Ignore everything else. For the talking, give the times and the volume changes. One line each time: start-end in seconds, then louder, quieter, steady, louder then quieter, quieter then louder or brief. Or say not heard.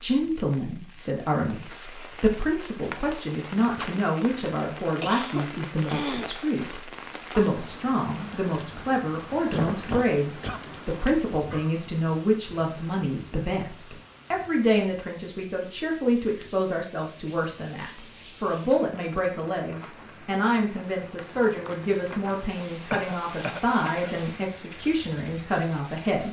0.0-26.2 steady.